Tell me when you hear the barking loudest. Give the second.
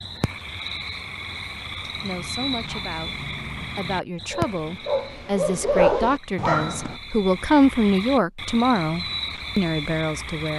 6 s.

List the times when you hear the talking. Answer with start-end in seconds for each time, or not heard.
1.9-10.5.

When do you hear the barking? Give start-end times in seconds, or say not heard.
1.9-7.0.